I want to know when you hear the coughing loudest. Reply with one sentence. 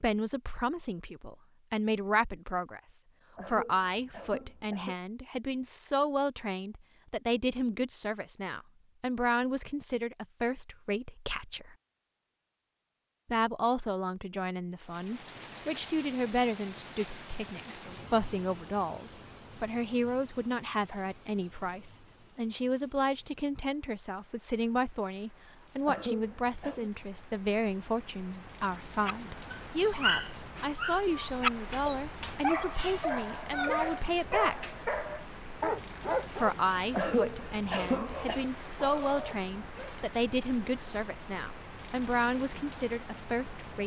The volume of the coughing peaks at 37 seconds.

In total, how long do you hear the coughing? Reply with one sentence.
The coughing can be heard for 4 seconds in total.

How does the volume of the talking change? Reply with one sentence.
The loudness of the talking stays about the same.